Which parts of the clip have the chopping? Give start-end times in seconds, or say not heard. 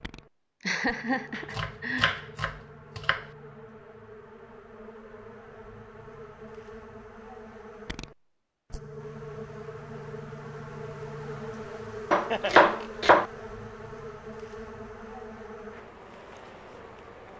1.4-3.2, 12.1-13.2.